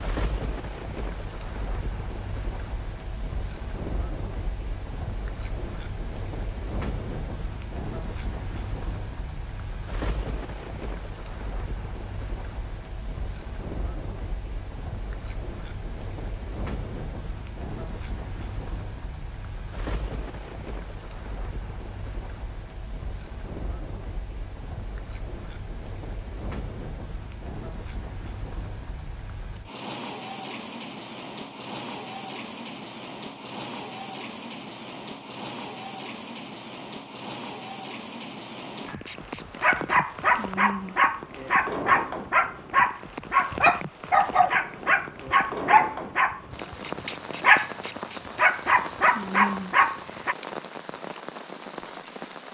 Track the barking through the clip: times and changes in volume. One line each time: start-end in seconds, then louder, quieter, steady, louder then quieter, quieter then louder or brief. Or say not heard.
38.9-50.4 steady.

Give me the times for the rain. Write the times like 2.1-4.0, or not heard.
0.0-52.4.